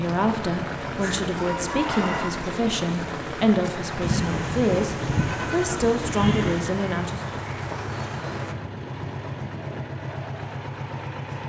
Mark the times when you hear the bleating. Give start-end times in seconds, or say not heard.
4.0-6.7.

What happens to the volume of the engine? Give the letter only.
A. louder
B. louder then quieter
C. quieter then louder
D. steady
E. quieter
D.